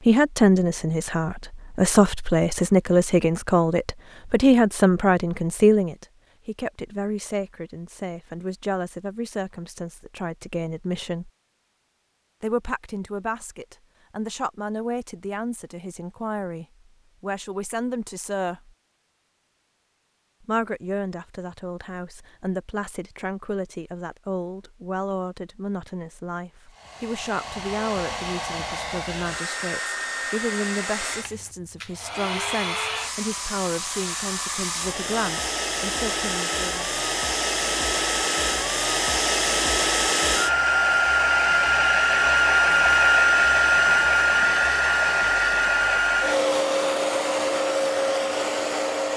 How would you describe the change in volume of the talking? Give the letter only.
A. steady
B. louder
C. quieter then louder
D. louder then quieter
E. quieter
E.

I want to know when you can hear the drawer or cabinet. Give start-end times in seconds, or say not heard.
not heard.